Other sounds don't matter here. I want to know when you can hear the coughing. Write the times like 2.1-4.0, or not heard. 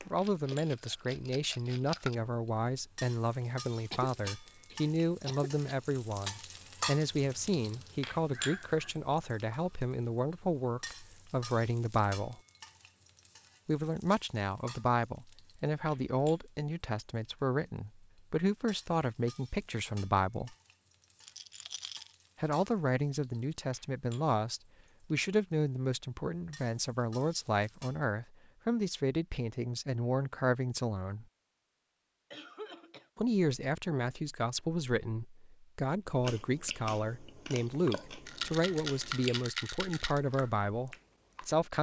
3.9-5.5, 32.3-33.1.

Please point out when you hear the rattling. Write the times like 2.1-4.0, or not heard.
0.2-2.1, 21.1-22.1, 38.2-40.2.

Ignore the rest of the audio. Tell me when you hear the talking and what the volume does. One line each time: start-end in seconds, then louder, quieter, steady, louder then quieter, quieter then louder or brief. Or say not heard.
0.1-12.4 steady
13.7-20.6 steady
22.4-31.2 steady
33.1-41.7 steady.